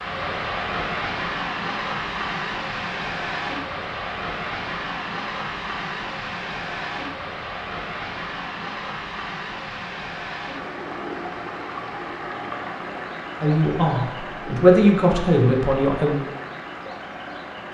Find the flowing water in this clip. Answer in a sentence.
The flowing water can be heard from 0.0 to 17.6 s.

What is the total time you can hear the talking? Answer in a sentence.
The talking can be heard for 3 seconds in total.